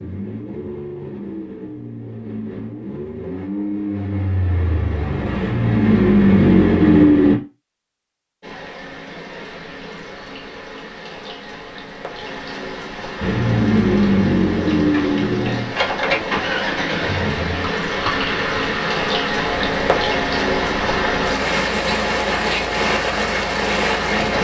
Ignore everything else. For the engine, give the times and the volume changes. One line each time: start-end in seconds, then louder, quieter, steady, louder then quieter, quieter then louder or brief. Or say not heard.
0.0-7.4 louder
13.2-24.3 quieter.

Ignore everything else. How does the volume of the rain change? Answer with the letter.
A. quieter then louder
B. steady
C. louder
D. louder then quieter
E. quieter
C.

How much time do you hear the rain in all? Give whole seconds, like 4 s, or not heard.
16 s.